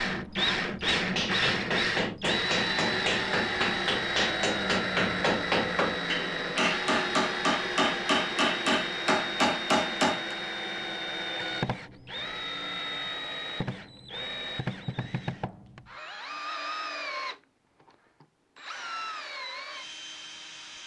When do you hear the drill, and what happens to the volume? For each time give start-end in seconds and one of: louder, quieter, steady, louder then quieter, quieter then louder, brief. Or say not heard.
0.0-20.8 quieter.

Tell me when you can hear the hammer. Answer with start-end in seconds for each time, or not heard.
0.7-10.3.